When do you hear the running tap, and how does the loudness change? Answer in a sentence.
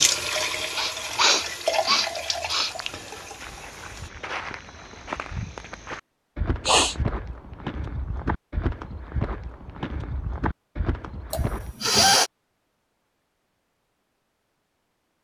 The running tap can be heard from 0.0 to 4.1 s, getting quieter.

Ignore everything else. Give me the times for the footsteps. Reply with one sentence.
The footsteps can be heard from 2.6 to 11.8 s.